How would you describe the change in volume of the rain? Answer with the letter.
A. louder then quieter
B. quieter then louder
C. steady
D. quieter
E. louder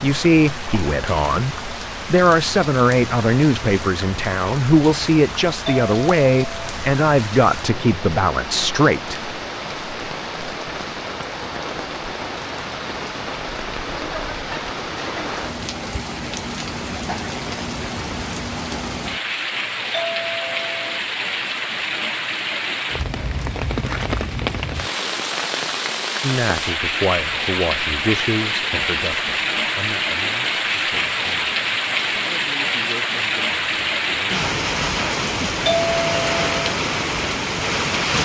E.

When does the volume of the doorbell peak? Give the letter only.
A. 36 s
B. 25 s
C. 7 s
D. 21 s
A.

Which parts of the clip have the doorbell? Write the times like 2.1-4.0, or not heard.
5.7-6.8, 19.9-21.0, 35.6-36.8.